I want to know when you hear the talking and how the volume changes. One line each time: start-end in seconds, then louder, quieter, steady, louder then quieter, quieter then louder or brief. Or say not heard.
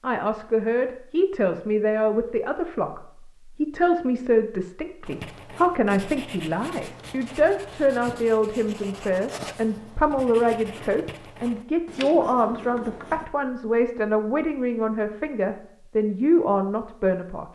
0.0-17.4 steady.